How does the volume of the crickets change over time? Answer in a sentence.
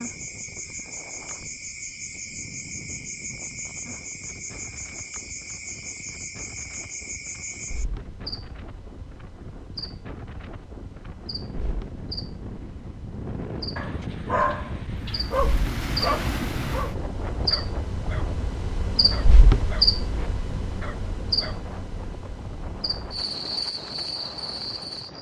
The loudness of the crickets goes down, then up.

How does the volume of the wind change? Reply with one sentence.
The loudness of the wind goes up, then down.